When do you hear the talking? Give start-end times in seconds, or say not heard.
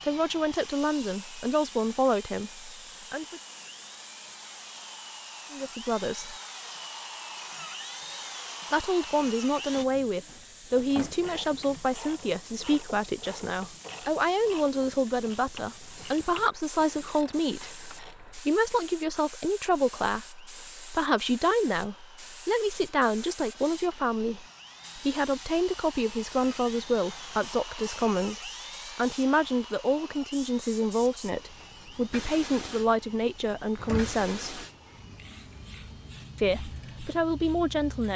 0.0-3.4, 5.5-6.3, 8.7-34.6, 36.4-38.1.